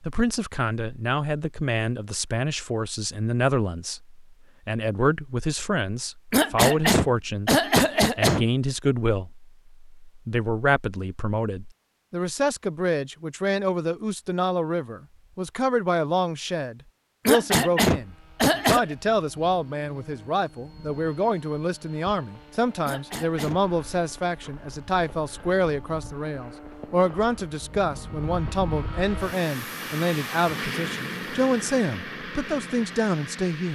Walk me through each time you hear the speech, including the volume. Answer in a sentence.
You can hear the speech from 0.0 to 33.7 s, at a steady volume.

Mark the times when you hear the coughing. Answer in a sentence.
You can hear the coughing from 6.3 to 8.4 s, from 17.2 to 18.9 s and from 22.9 to 23.6 s.